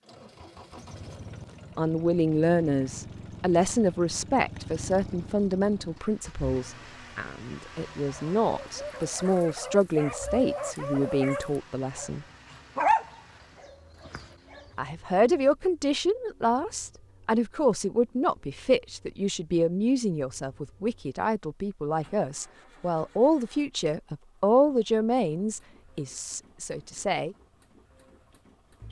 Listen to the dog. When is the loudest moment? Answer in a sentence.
The loudest moment of the dog is at 13 seconds.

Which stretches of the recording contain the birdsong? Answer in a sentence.
The birdsong can't be heard in this clip.